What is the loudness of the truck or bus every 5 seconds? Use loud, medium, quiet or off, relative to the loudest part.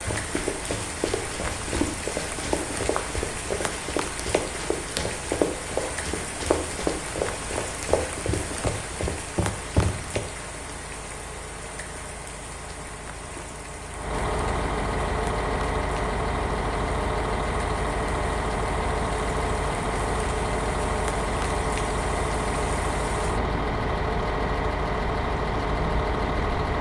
quiet, quiet, medium, loud, loud, loud.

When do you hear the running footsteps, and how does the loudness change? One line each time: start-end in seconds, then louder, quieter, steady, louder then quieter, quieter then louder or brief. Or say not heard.
0.1-10.2 steady.